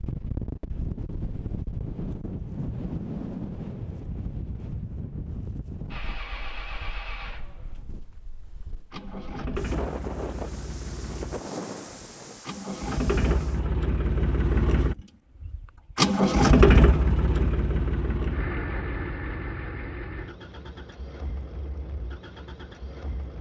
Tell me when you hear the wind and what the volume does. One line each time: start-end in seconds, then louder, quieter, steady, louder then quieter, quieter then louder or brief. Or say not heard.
0.0-13.8 quieter then louder.